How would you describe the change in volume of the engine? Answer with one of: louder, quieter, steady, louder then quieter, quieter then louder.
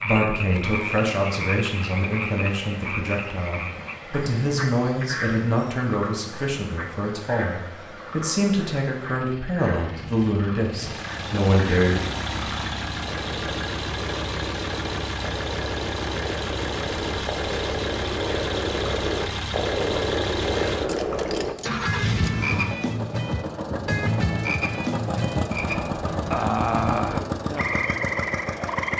louder.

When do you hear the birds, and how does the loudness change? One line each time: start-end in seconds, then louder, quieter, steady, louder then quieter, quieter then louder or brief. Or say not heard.
not heard.